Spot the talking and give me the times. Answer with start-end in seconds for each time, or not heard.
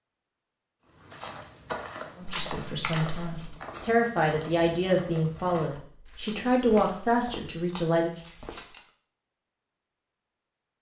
2.1-8.2.